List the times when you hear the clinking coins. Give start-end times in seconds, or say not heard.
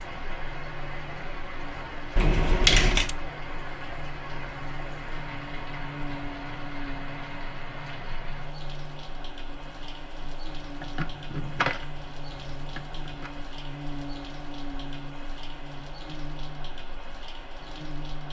2.1-3.1, 10.8-13.3.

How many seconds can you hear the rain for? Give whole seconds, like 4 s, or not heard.
18 s.